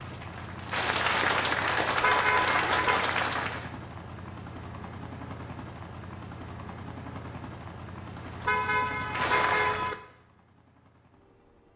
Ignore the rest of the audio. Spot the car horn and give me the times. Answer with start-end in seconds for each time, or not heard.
2.0-3.0, 8.4-9.9.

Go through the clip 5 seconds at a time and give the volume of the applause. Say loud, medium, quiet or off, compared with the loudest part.
loud, medium, off.